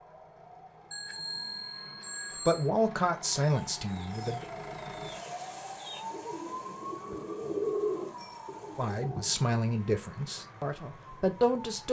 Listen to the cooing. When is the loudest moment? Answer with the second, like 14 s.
8 s.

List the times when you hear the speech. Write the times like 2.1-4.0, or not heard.
2.5-4.5, 8.8-11.8.